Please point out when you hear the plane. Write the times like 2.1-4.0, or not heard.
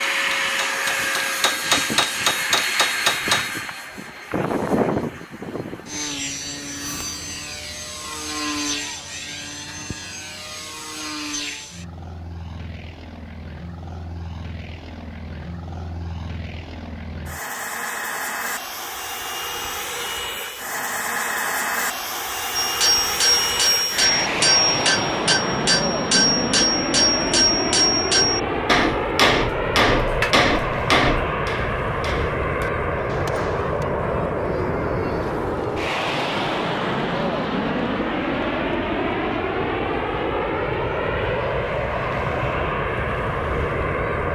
0.0-44.3.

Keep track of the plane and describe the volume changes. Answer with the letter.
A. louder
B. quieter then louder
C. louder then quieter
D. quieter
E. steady
B.